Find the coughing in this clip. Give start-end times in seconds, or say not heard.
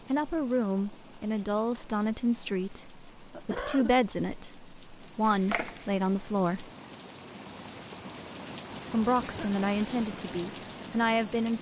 3.3-3.9, 9.2-9.7.